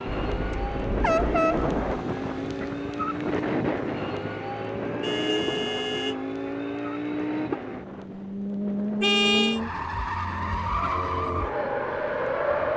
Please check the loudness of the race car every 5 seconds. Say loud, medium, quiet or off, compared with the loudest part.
medium, loud, loud.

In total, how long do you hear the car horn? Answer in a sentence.
You can hear the car horn for 3 seconds altogether.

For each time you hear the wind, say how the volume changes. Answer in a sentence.
You can hear the wind from 0.0 to 12.6 s, getting quieter.